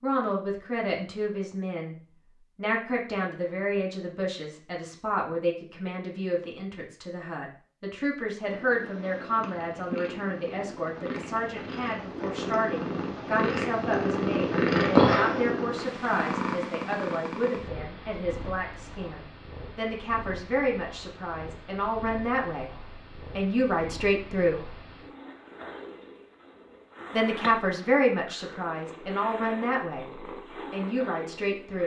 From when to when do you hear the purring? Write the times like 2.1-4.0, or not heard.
8.4-31.8.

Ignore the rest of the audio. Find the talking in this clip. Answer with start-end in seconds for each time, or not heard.
0.0-1.9, 2.5-24.8, 27.1-31.8.